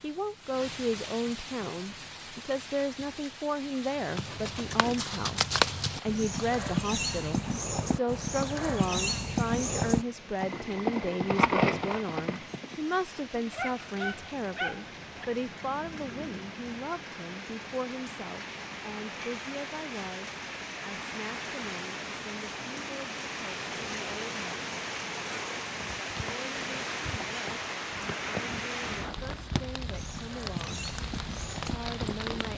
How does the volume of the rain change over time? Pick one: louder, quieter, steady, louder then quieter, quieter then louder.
louder.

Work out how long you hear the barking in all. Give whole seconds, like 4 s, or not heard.
2 s.